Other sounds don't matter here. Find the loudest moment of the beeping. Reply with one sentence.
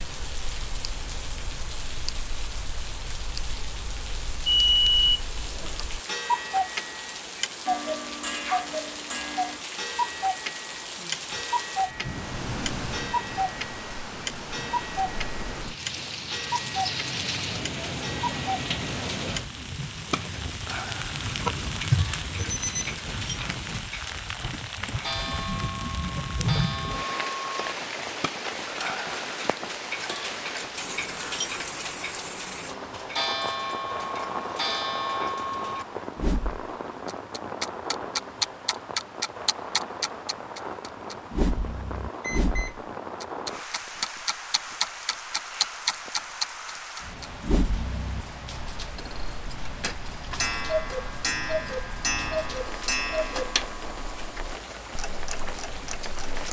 The loudest moment of the beeping is at 5 seconds.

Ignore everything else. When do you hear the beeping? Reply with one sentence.
You can hear the beeping from 4.5 to 5.7 s, from 22.4 to 23.1 s and from 42.2 to 42.9 s.